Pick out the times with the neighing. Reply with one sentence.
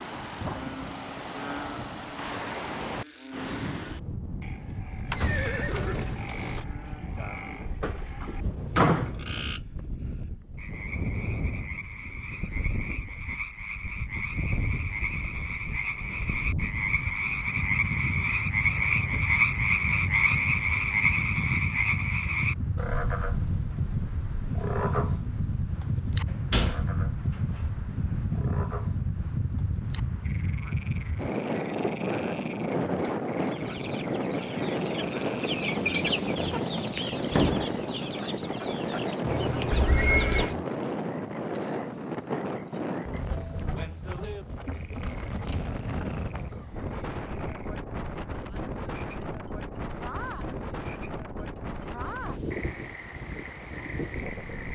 You can hear the neighing from 5.0 to 6.6 s, from 18.6 to 19.3 s and from 39.2 to 40.5 s.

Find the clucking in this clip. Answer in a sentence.
The clucking can be heard from 33.4 to 40.5 s.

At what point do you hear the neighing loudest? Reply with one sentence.
The volume of the neighing peaks at 40 seconds.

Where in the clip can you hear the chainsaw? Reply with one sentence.
The chainsaw can't be heard in this clip.